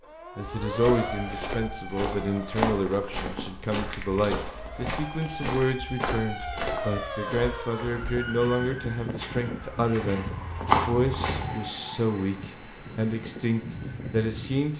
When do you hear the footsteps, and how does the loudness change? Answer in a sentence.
You can hear the footsteps from 0.7 to 11.4 s, getting quieter then louder.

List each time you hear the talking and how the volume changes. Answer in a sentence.
You can hear the talking from 0.3 to 14.7 s, at a steady volume.